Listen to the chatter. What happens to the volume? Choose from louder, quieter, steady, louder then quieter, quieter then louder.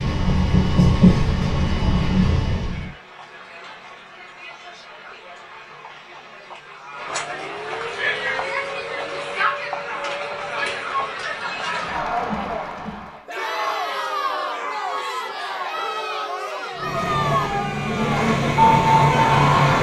louder.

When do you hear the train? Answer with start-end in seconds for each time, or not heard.
0.0-2.9, 16.8-19.7.